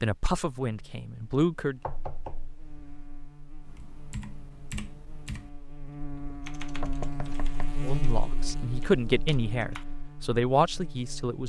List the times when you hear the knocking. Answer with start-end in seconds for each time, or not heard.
1.8-3.1, 6.8-7.8.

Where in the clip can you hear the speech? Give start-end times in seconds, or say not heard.
0.0-1.8, 7.8-11.4.